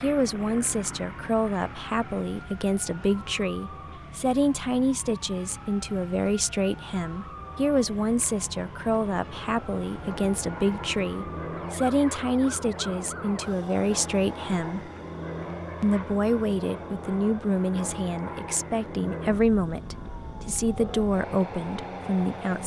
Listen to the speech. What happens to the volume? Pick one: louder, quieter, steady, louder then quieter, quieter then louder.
steady.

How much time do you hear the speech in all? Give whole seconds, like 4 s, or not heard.
22 s.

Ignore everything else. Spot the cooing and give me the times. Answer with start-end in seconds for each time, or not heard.
not heard.